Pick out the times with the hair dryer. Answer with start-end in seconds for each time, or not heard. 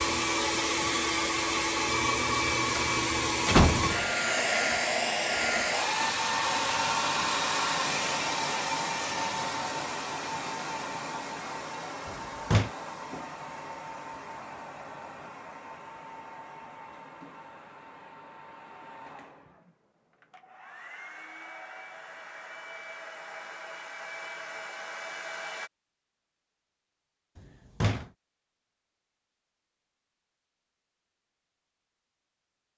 0.0-25.7.